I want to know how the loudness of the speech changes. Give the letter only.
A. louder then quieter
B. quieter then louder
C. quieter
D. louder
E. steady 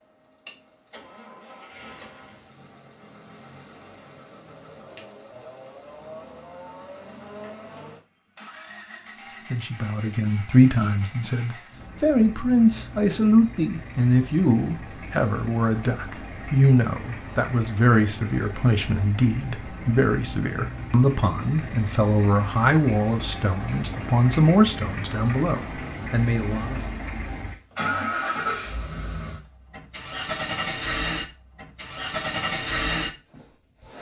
E.